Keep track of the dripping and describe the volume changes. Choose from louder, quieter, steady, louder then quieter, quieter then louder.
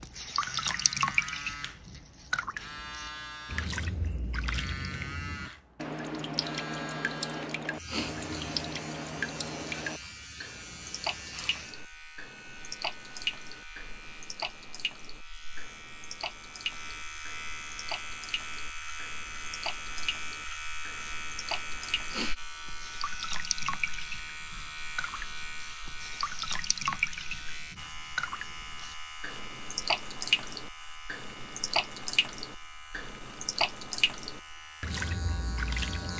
quieter then louder.